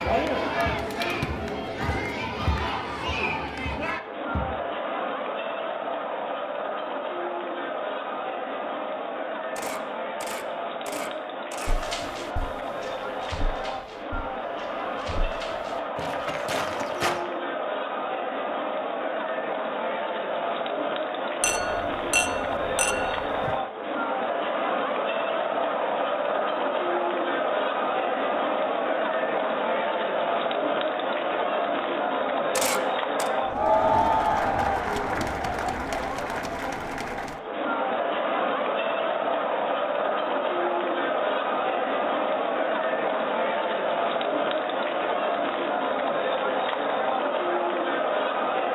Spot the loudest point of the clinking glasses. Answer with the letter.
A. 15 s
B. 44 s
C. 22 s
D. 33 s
C.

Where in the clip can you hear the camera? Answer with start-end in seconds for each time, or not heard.
9.6-11.8, 32.5-33.3.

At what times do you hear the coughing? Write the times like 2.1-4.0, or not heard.
not heard.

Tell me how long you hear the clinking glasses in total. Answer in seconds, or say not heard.
2 s.